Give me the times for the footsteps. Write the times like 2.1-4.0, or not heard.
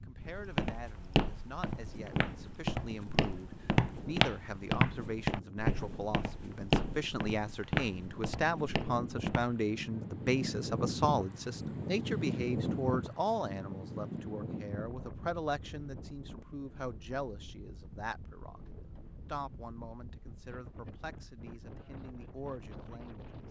0.2-9.6.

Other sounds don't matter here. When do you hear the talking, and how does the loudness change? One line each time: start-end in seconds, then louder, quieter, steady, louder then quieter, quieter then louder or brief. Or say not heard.
0.0-23.2 louder then quieter.